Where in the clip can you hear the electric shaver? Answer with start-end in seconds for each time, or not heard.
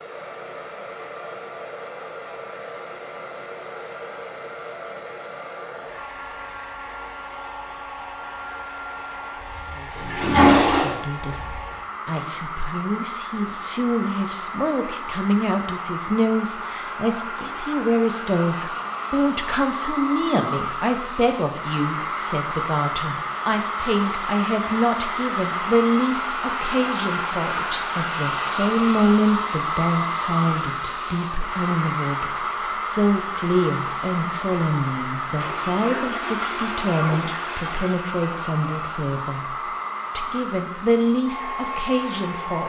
not heard.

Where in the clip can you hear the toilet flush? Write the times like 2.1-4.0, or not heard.
9.9-10.9, 35.4-38.0.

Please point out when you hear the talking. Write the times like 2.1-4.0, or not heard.
9.8-39.5, 40.1-42.6.